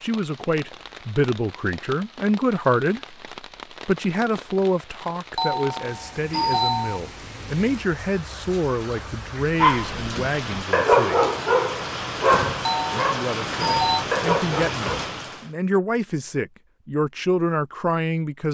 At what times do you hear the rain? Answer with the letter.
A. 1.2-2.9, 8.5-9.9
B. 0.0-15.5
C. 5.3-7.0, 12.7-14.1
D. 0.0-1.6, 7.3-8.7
B.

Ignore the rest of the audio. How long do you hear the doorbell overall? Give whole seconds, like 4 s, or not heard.
3 s.